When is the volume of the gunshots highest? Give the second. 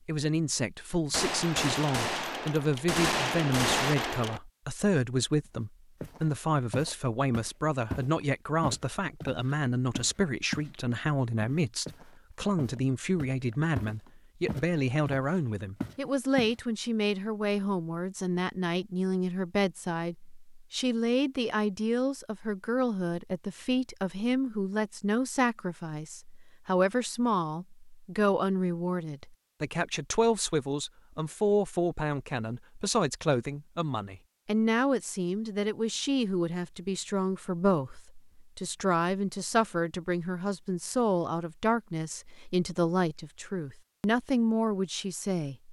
4 s.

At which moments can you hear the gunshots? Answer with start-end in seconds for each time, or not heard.
1.1-4.4.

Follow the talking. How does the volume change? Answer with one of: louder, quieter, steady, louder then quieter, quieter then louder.
steady.